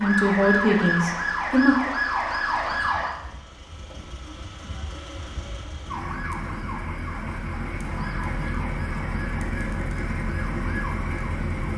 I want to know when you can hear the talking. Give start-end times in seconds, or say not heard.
0.0-1.8.